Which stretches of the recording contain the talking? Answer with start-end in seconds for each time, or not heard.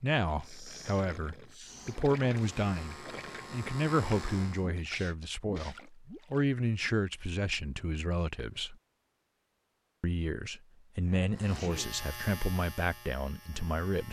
0.0-8.8, 10.0-14.0.